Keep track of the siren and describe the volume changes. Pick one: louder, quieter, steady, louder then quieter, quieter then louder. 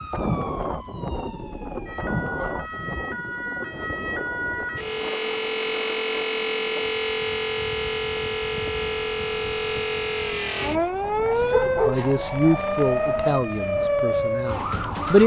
louder.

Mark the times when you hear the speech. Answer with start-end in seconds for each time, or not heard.
11.8-15.2.